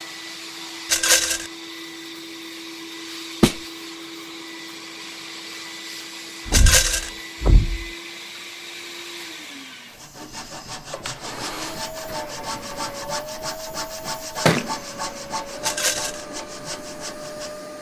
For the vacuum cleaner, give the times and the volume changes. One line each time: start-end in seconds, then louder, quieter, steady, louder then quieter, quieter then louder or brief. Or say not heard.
0.0-17.7 steady.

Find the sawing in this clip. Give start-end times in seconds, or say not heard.
9.9-17.7.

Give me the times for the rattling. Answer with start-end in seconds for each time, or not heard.
0.8-1.5, 6.5-7.1, 15.6-16.2.